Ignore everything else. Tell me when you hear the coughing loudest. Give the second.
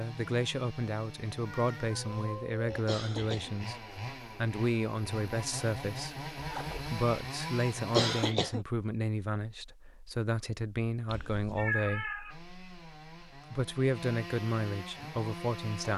8 s.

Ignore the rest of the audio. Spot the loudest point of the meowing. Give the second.
12 s.